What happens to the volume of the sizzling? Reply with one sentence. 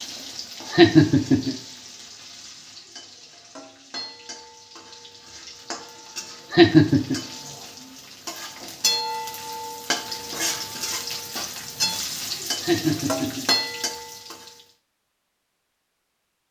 The volume of the sizzling goes up.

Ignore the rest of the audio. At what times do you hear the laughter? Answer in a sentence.
The laughter can be heard from 0.7 to 1.6 s, from 6.5 to 7.2 s and from 12.6 to 13.4 s.